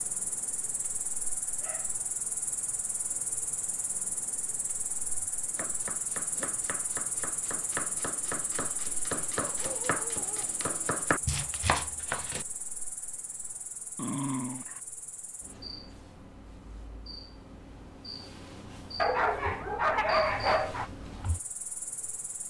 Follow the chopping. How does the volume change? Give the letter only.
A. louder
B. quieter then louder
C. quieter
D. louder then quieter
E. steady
A.